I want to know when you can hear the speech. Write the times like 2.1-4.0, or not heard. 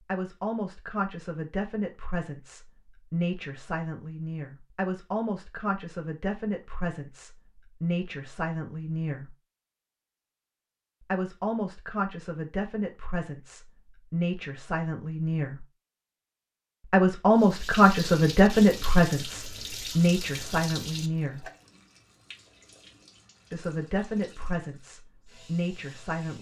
0.1-9.3, 11.0-15.7, 16.9-21.5, 23.5-26.3.